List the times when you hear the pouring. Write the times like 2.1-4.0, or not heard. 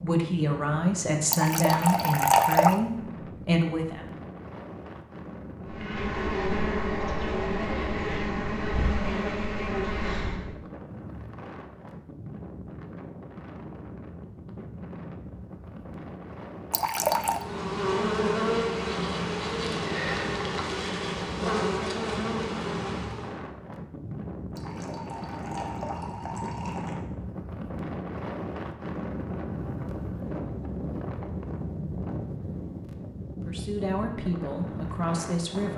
1.3-2.8, 16.7-17.4, 24.6-26.9.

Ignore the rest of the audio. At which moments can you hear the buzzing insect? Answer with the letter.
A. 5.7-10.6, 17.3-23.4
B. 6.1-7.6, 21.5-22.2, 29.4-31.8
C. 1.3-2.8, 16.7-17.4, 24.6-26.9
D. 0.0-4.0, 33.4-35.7
A.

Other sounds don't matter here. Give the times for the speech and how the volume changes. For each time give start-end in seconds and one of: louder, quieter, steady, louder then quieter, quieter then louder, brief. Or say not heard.
0.0-4.0 steady
33.4-35.7 brief.